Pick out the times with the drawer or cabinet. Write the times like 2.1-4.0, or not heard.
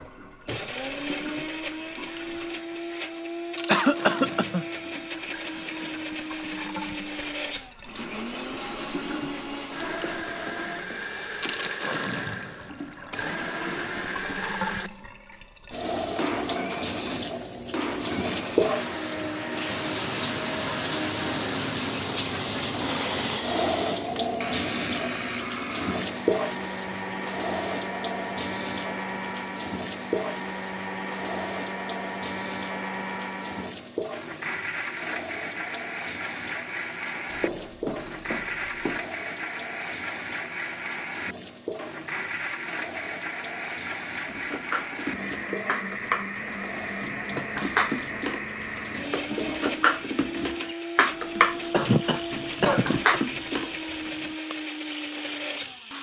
not heard.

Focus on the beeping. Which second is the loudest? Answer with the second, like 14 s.
38 s.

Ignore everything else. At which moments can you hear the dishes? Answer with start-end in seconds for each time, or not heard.
44.2-54.4.